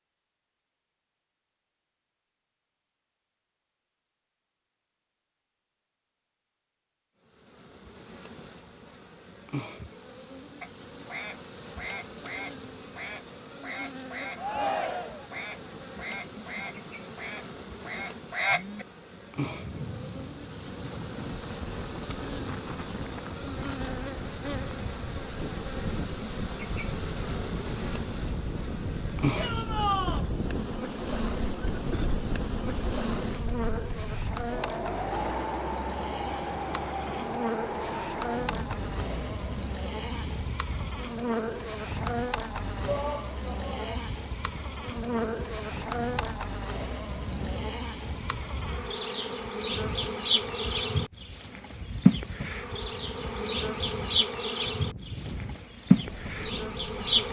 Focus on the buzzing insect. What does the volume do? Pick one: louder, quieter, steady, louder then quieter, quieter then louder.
louder.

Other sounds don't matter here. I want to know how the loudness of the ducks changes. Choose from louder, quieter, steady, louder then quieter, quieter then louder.
louder.